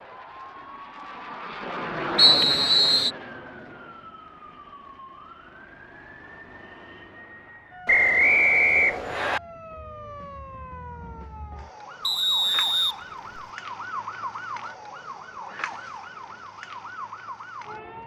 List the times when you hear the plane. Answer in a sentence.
The plane can be heard from 0.0 to 4.2 s.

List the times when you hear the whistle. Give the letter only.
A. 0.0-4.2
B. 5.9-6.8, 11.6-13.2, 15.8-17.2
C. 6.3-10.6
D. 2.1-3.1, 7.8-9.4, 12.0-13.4
D.